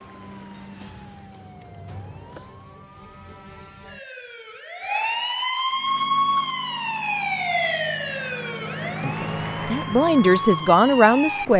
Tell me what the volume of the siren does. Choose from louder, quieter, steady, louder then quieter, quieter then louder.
louder then quieter.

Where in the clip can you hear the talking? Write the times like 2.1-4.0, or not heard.
9.0-11.5.